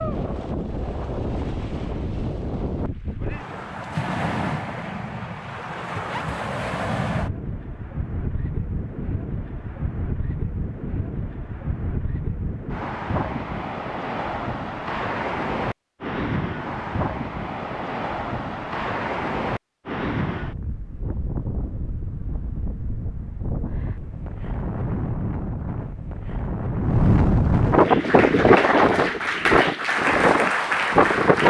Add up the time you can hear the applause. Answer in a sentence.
You can hear the applause for 4 seconds altogether.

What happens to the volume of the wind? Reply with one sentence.
The loudness of the wind goes up.